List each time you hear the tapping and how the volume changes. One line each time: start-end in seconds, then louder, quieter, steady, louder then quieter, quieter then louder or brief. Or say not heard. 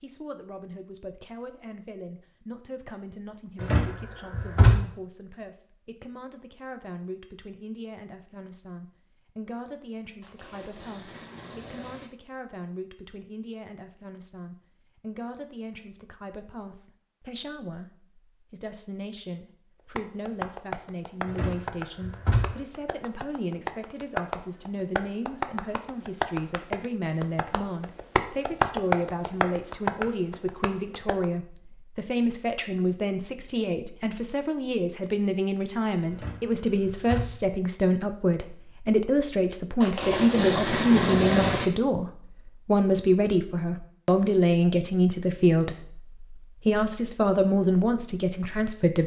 19.9-31.2 louder.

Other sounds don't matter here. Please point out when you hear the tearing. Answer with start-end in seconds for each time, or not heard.
10.2-12.1, 39.8-41.6.